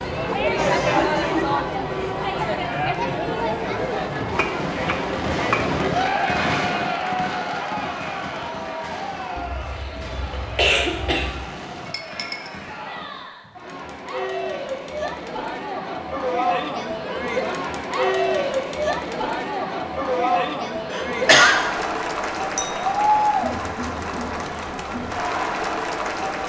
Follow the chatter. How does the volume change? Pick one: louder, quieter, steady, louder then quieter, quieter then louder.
quieter then louder.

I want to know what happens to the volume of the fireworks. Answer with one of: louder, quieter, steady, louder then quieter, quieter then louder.
quieter.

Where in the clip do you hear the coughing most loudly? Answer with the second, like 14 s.
21 s.